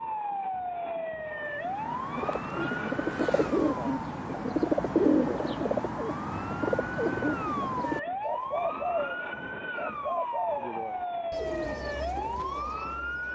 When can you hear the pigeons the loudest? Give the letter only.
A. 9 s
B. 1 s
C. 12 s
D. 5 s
D.